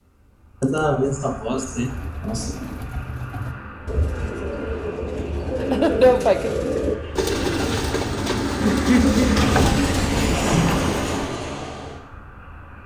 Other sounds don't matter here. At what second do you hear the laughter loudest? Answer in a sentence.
The loudest moment of the laughter is at 6 seconds.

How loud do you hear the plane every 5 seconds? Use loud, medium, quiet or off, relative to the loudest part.
quiet, loud, loud.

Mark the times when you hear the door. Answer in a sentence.
The door can be heard from 9.3 to 11.3 s.